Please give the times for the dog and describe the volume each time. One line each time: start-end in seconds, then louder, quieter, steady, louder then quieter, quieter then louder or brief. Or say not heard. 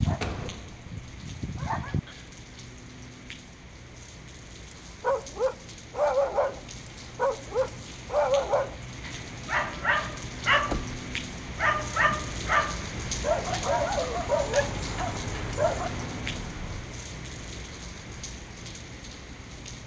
0.0-2.0 brief
5.0-15.9 steady.